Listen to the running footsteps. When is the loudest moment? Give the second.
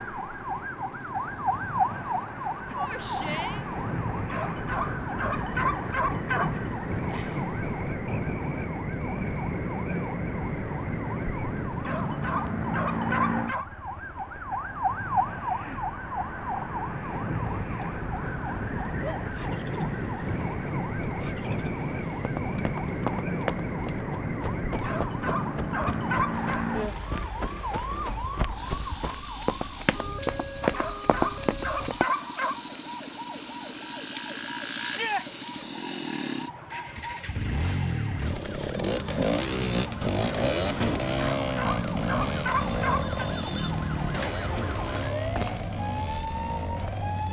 31 s.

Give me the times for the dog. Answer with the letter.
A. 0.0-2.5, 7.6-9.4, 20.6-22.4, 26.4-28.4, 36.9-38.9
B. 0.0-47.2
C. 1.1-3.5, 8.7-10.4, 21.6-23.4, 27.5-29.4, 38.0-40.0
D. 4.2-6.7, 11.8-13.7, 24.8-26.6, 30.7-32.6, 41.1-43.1
D.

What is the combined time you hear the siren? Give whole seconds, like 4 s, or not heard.
47 s.